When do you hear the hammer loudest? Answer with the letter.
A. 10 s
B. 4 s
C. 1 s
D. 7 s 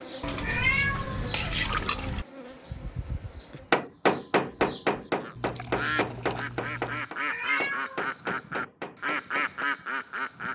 B.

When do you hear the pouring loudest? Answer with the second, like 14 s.
2 s.